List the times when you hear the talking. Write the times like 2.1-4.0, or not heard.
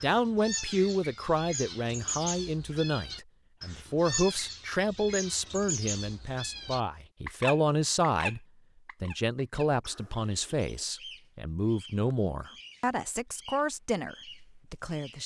0.0-8.4, 9.0-15.2.